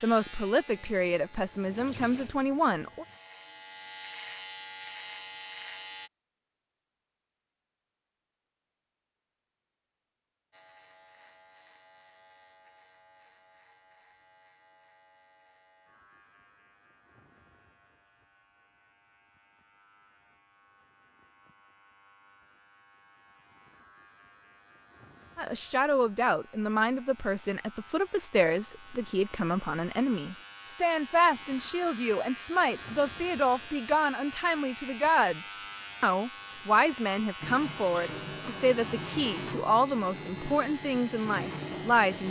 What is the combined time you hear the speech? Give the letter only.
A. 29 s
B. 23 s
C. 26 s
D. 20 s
D.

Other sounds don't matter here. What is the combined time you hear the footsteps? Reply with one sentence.
You can't hear the footsteps here.